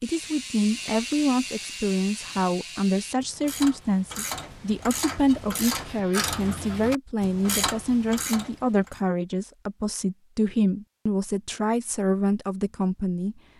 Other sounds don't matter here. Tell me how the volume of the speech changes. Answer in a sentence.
The loudness of the speech stays about the same.